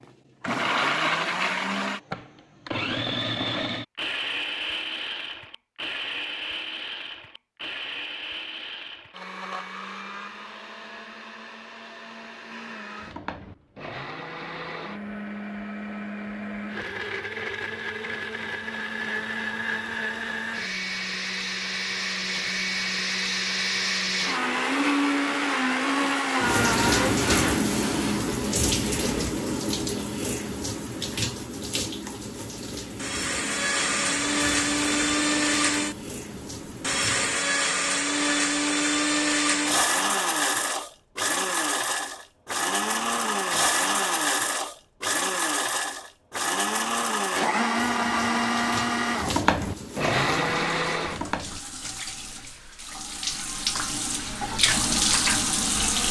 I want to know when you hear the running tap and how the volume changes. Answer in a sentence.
The running tap can be heard from 26.4 to 37.5 s, getting quieter; and from 47.7 to 56.0 s, getting louder.